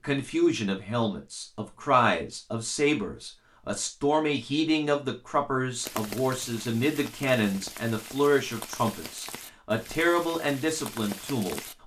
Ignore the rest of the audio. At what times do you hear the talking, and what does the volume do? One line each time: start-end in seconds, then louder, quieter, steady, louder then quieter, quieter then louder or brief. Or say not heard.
0.0-11.6 steady.